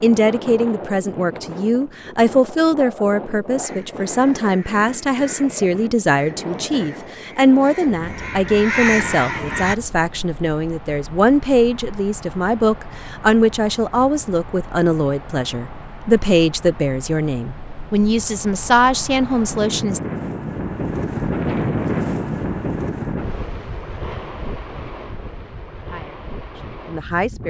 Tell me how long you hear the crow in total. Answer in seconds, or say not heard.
6 s.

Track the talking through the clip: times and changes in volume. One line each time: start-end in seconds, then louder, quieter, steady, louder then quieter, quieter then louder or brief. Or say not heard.
0.0-20.0 steady
25.9-27.4 brief.